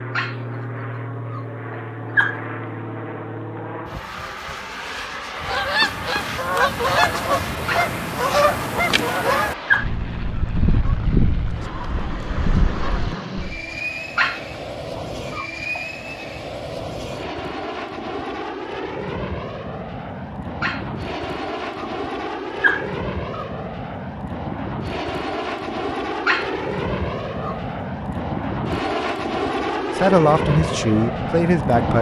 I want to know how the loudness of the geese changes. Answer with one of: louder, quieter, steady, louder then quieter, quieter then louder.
quieter.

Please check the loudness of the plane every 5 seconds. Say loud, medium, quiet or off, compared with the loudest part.
medium, medium, medium, medium, medium, loud, loud.